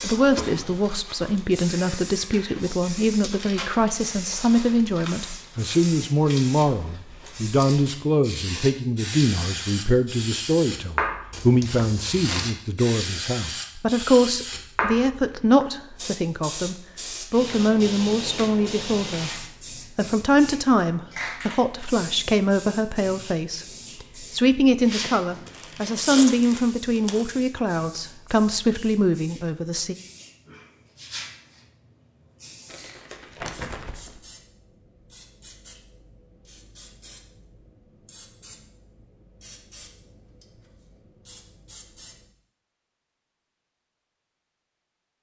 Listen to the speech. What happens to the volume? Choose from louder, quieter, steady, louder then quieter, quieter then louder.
steady.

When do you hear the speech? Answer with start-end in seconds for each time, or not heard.
0.0-19.3, 19.9-29.9.